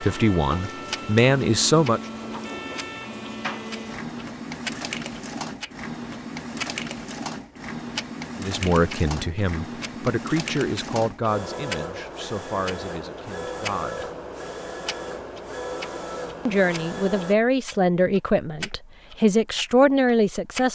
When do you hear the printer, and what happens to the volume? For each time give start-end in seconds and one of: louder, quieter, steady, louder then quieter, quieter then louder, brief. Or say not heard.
0.0-17.4 steady.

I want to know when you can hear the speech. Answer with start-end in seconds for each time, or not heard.
0.0-2.0, 8.4-14.1, 16.4-20.7.